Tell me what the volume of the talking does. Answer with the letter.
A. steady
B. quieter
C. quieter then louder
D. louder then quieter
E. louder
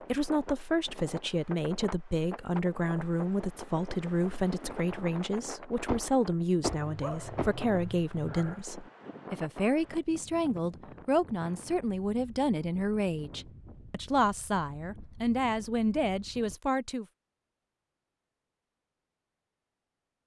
A.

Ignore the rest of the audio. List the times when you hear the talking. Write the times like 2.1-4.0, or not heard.
0.1-17.1.